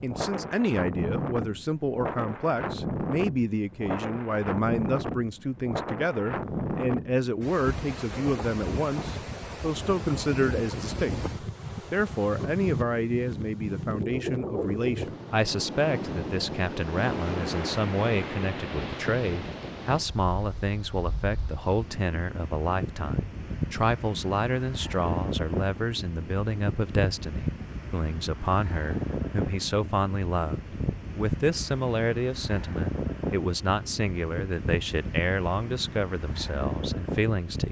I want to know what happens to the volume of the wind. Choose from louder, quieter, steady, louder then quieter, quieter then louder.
steady.